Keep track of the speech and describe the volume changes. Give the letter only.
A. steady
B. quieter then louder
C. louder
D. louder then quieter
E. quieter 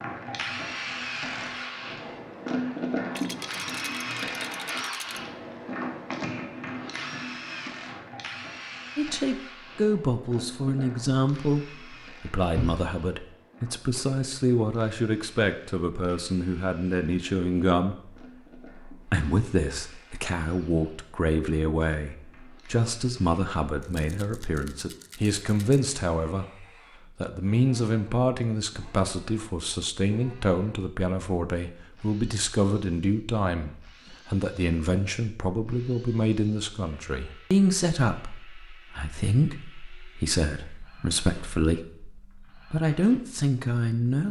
A.